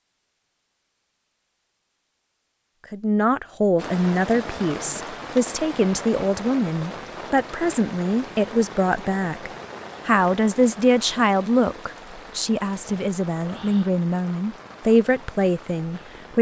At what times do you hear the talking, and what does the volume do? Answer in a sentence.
You can hear the talking from 2.9 to 16.3 s, at a steady volume.